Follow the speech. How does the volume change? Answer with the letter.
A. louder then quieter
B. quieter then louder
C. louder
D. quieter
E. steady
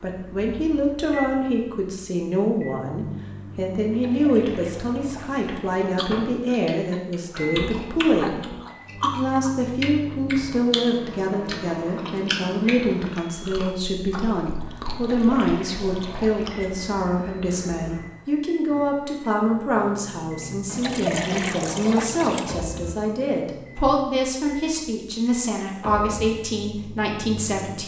E.